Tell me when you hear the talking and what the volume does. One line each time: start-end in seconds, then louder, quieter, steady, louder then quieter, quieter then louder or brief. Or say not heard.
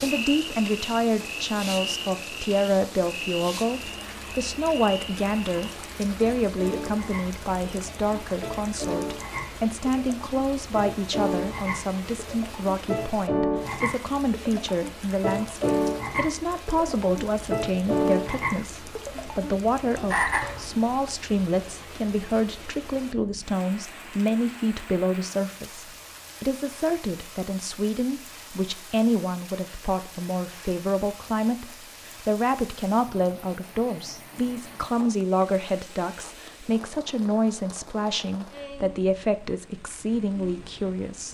0.0-41.2 steady.